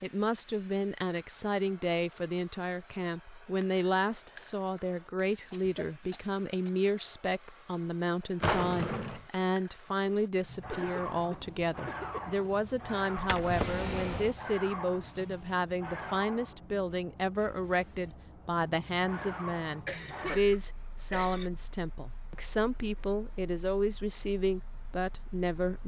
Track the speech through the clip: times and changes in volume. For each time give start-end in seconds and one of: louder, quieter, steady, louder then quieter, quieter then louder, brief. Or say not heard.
0.0-25.8 steady.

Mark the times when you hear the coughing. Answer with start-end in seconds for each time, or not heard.
5.5-6.7, 10.7-12.3, 19.9-21.5.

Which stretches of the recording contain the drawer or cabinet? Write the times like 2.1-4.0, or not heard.
8.4-9.2, 13.2-14.3.